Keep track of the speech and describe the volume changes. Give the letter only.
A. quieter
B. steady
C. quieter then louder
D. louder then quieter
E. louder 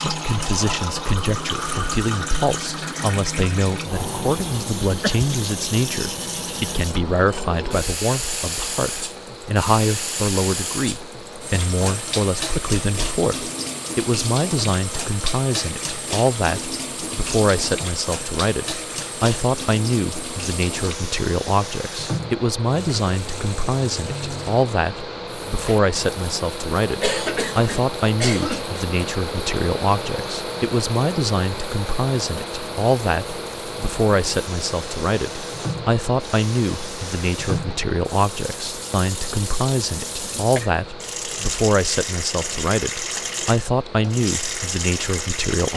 B.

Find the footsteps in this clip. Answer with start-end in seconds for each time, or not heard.
not heard.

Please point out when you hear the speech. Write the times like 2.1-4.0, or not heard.
0.0-45.7.